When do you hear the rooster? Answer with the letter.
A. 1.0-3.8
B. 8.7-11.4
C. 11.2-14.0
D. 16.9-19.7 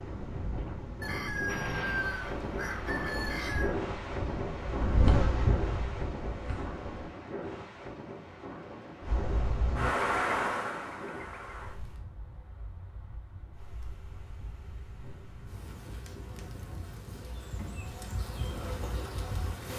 A.